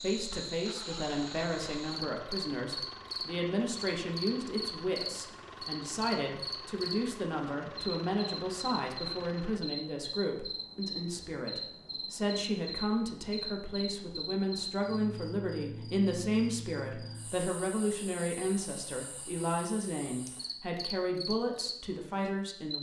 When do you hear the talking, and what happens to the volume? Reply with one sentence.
You can hear the talking from 0.0 to 22.7 s, at a steady volume.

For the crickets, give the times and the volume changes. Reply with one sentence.
You can hear the crickets from 0.0 to 22.7 s, getting quieter.